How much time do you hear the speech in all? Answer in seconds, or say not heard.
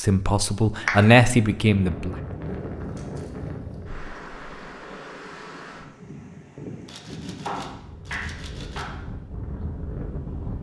2 s.